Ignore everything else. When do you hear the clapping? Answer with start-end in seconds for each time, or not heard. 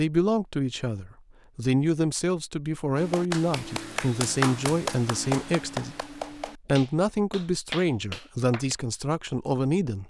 3.0-8.8.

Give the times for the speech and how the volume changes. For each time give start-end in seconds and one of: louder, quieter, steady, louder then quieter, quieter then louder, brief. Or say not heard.
0.0-10.0 steady.